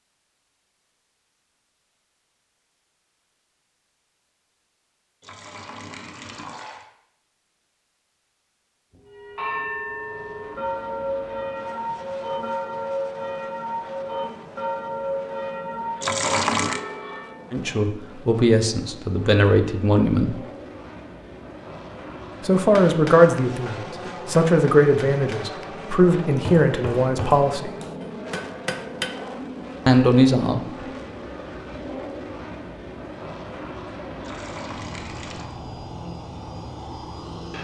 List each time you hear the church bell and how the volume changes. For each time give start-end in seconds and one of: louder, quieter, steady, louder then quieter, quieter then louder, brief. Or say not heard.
8.9-17.4 steady.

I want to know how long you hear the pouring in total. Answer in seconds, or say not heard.
4 s.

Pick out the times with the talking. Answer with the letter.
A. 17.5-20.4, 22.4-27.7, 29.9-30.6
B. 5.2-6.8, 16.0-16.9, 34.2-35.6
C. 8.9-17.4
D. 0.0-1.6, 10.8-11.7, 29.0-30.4
A.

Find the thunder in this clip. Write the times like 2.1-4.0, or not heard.
not heard.